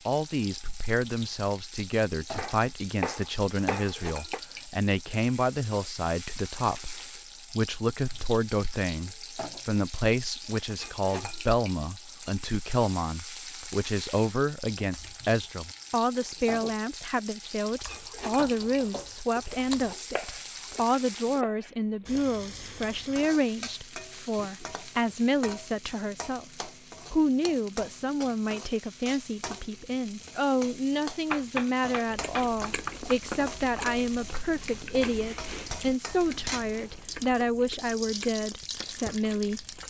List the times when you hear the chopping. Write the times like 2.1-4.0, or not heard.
2.4-4.4, 19.4-22.2, 31.3-33.1.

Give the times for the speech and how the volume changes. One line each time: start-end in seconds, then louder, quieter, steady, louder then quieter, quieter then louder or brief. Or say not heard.
0.1-39.6 steady.